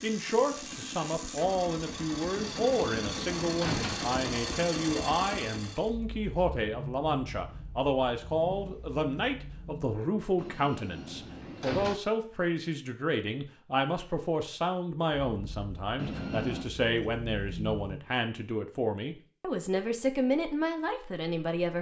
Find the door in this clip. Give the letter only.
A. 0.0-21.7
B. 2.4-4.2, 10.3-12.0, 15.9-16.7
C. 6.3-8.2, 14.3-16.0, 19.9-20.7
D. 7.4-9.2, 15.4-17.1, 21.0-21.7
B.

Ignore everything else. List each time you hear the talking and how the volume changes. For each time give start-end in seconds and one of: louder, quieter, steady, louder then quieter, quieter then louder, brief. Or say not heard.
0.0-21.7 steady.